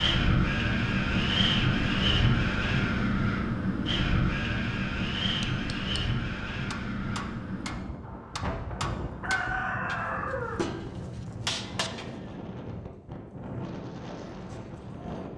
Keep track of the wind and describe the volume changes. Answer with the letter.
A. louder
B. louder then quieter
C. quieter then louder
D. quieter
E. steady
D.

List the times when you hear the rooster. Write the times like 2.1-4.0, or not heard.
9.2-10.6.